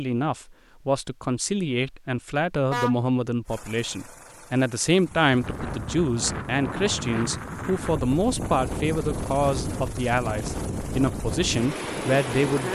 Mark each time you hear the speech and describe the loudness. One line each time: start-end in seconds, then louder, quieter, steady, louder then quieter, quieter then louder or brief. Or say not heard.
0.0-12.7 steady.